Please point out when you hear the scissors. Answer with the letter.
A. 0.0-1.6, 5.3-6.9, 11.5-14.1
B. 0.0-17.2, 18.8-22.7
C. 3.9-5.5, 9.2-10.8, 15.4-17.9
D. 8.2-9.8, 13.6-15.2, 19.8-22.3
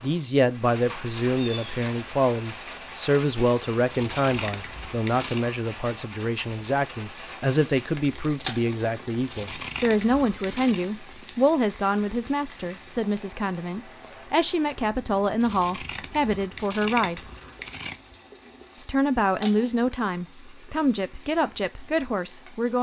C.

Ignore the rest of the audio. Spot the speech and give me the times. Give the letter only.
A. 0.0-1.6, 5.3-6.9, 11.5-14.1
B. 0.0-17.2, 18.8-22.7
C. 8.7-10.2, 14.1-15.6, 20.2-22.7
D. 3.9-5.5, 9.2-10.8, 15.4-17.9
B.